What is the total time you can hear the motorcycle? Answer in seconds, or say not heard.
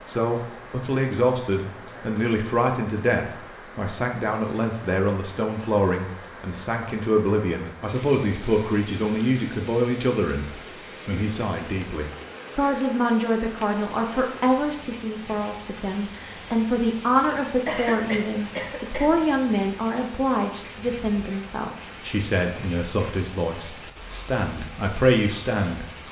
not heard.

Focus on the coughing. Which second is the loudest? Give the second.
18 s.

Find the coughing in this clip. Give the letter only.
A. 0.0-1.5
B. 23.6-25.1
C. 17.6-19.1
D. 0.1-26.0
C.